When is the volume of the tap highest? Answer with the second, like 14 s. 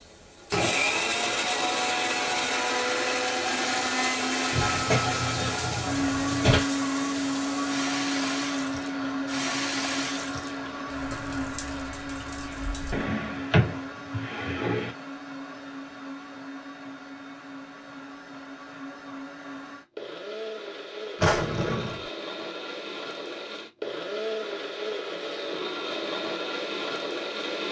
10 s.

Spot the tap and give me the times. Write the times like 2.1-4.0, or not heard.
3.5-13.1.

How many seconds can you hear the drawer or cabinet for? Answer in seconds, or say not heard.
5 s.